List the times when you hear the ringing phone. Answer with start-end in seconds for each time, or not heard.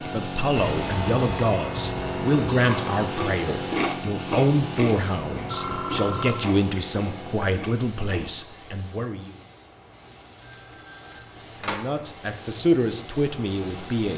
0.6-2.3, 5.3-6.3, 10.4-11.8.